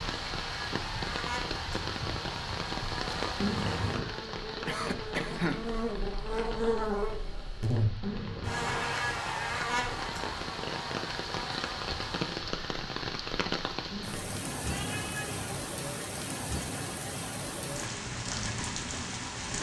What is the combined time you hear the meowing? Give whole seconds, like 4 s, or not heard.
3 s.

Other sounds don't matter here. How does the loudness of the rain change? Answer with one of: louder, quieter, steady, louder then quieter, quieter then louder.
quieter then louder.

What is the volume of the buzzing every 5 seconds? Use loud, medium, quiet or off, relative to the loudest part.
medium, loud, medium, off.